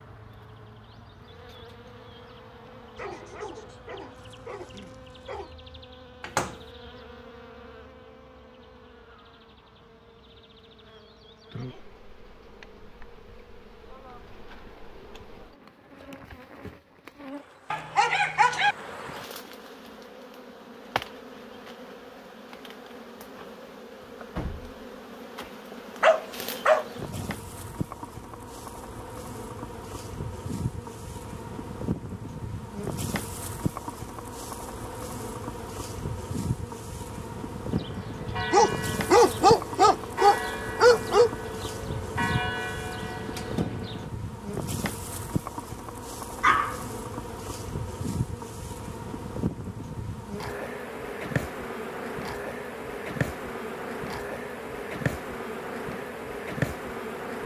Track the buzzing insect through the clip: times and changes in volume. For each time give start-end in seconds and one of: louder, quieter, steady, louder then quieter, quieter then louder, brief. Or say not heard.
0.0-57.4 louder.